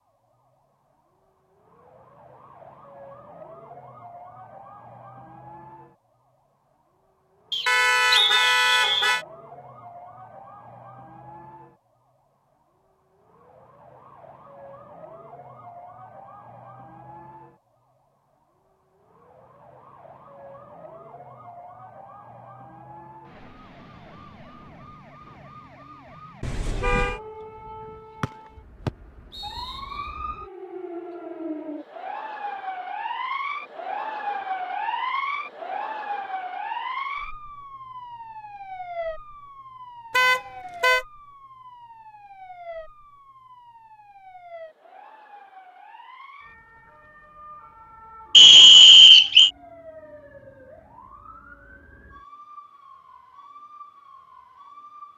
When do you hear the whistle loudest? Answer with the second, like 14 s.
49 s.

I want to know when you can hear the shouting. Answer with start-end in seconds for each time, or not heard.
not heard.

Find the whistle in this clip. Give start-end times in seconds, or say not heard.
7.5-9.2, 28.2-29.8, 48.4-49.5.